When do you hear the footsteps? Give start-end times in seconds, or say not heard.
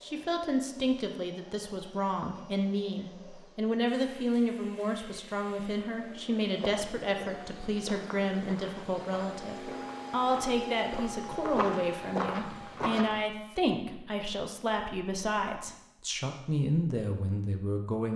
6.4-13.2.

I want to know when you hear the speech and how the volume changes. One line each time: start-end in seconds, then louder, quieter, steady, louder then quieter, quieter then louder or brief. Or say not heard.
0.0-18.1 steady.